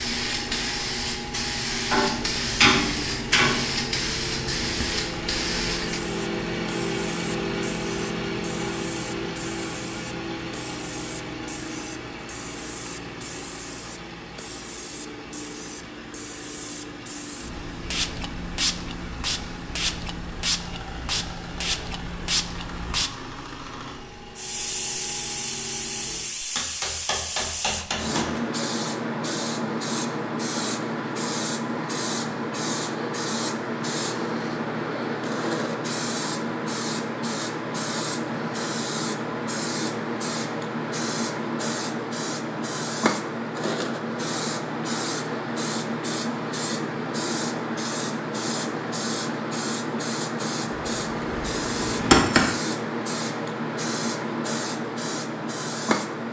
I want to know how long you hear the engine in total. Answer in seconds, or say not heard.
26 s.